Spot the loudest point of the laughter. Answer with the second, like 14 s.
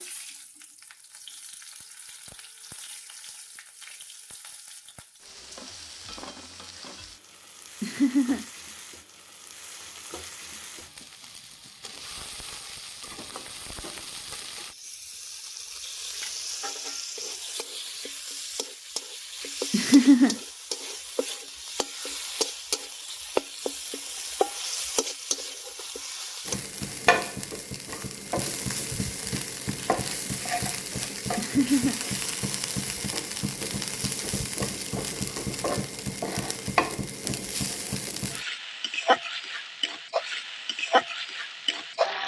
20 s.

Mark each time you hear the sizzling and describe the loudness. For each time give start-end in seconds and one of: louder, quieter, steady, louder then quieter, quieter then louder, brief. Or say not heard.
0.0-42.2 louder.